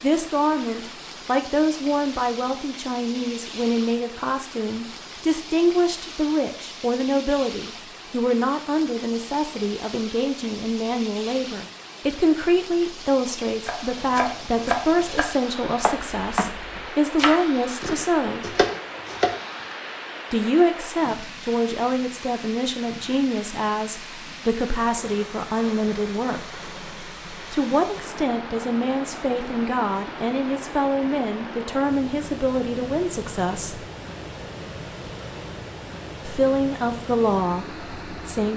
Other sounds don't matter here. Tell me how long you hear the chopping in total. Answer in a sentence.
The chopping can be heard for 6 seconds in total.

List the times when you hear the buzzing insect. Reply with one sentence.
You can't hear the buzzing insect here.